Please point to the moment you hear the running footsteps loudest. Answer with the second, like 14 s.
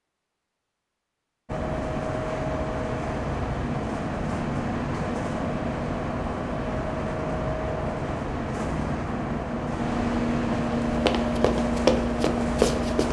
12 s.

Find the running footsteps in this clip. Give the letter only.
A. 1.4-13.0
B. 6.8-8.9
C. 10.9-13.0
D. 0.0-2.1
C.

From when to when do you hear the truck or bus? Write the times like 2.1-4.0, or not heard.
1.4-13.0.